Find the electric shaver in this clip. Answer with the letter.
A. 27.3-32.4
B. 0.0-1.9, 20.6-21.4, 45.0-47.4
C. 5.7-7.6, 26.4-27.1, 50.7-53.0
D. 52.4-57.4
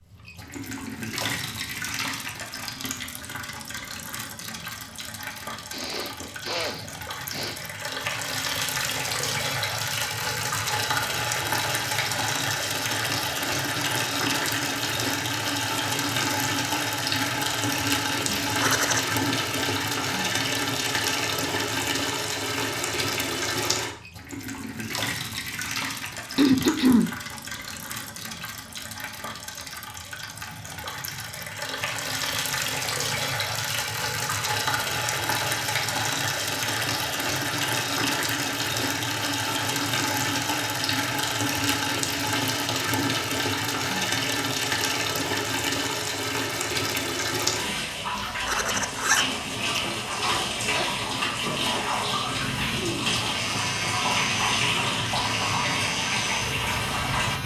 D.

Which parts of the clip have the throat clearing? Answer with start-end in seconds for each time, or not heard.
5.7-7.6, 26.4-27.1, 50.7-53.0.